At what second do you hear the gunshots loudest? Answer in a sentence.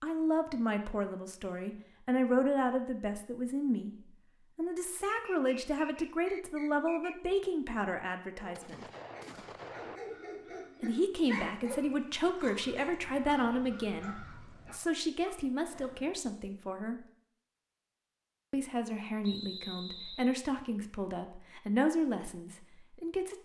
The volume of the gunshots peaks at 10 seconds.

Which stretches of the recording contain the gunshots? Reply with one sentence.
You can hear the gunshots from 8.6 to 10.0 s.